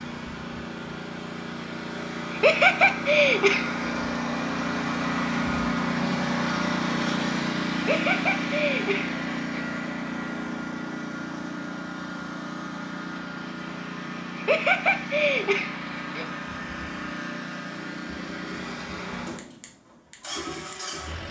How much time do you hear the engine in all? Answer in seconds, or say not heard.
21 s.